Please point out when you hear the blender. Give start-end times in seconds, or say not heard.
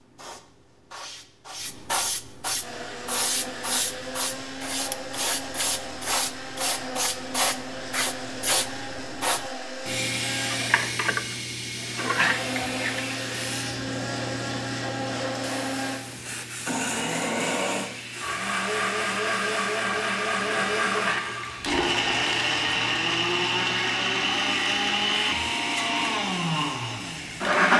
2.6-27.7.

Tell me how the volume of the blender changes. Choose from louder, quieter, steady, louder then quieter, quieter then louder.
louder.